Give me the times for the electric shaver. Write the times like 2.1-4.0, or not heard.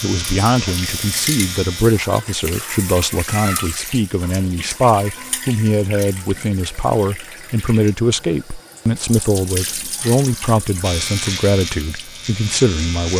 0.0-1.9, 10.8-13.1.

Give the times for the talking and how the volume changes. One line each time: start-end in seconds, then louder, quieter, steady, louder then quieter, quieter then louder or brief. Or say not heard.
0.0-13.1 steady.